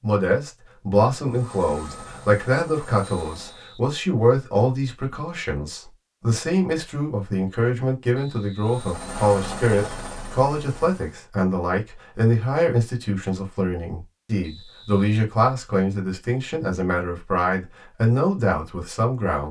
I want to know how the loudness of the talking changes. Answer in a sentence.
The loudness of the talking stays about the same.